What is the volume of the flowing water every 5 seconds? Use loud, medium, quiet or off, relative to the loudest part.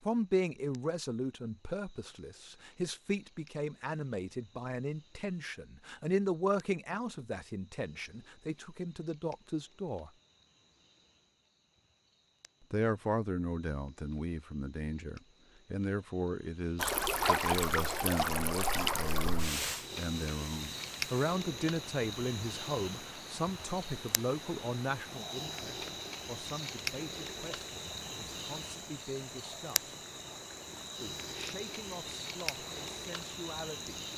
off, off, off, loud, quiet, quiet, quiet.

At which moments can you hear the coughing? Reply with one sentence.
You can't hear the coughing here.